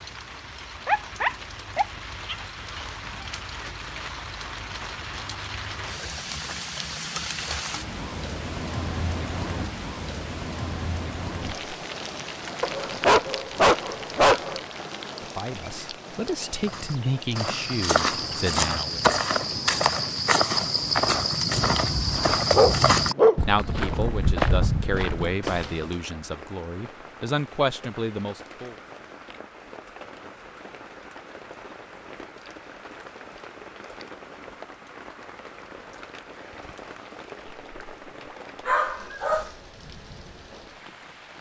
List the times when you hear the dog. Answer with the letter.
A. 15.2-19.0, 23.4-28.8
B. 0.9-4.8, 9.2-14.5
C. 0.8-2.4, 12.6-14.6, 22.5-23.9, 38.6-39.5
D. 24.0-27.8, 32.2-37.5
C.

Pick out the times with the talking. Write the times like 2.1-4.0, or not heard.
15.2-19.0, 23.4-28.8.